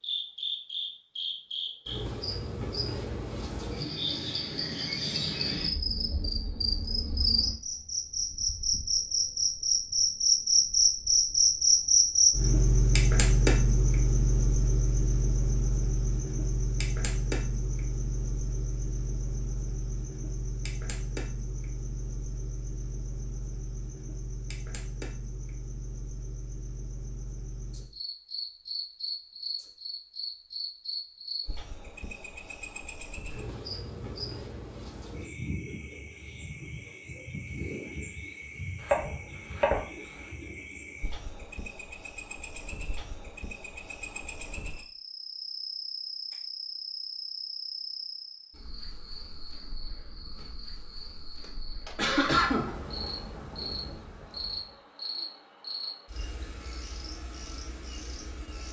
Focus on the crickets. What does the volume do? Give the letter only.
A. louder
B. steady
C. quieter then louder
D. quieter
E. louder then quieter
D.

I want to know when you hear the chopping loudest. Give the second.
39 s.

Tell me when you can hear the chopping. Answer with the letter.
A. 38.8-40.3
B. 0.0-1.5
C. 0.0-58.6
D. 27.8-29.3
A.